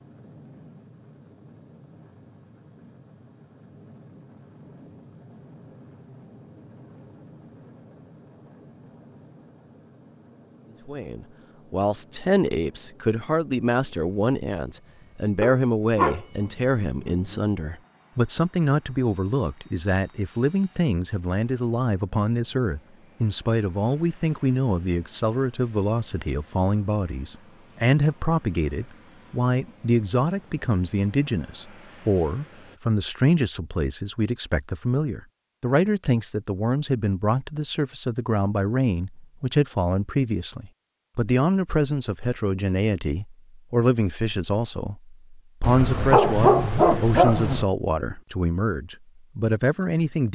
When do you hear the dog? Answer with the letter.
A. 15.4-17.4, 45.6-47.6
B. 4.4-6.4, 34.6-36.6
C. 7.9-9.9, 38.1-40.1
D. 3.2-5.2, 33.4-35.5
A.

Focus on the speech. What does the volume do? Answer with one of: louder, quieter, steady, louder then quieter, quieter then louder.
steady.